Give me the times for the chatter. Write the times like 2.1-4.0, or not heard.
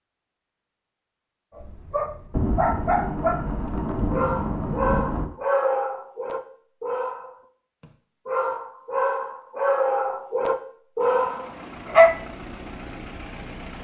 not heard.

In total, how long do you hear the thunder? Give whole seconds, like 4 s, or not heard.
3 s.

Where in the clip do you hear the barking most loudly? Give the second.
12 s.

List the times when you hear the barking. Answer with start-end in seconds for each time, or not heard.
1.6-12.2.